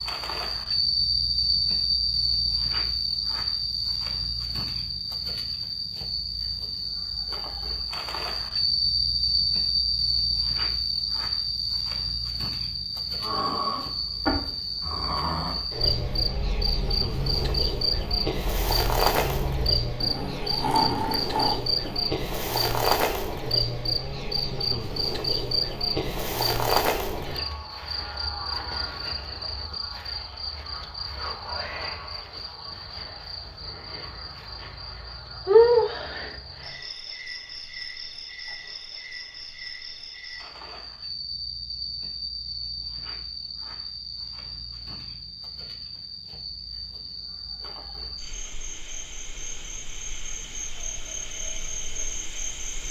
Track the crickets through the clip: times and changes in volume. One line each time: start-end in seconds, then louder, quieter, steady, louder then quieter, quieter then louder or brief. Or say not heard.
0.0-52.8 quieter.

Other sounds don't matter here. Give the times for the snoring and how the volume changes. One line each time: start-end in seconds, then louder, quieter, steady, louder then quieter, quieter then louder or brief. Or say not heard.
13.2-22.1 quieter then louder.